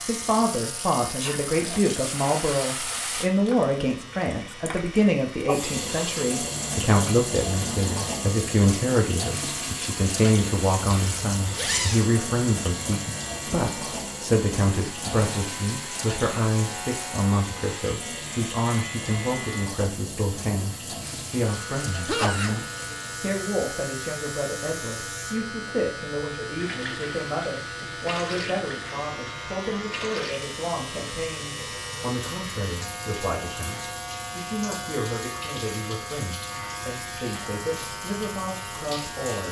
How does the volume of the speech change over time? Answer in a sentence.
The loudness of the speech goes down.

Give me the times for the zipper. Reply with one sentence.
You can hear the zipper from 10.8 to 12.1 s.